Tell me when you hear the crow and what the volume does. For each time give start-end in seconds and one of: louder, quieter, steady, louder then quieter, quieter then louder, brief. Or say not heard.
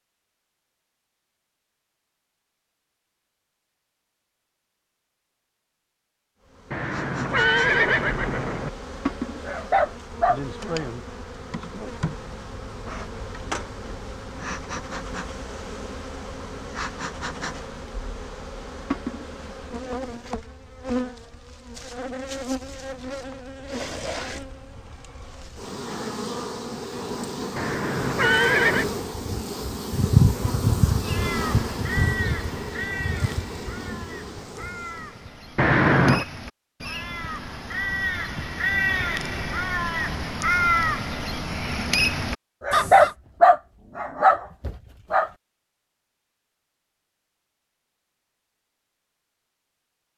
31.0-43.1 quieter then louder.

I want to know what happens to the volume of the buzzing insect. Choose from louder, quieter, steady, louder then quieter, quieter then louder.
louder.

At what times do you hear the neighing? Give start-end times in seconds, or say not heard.
6.7-8.7, 27.6-28.9, 35.5-36.2.